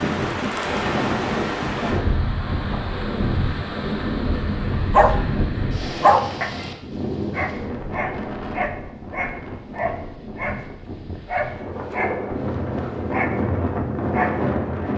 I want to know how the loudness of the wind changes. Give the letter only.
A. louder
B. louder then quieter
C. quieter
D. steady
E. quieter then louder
E.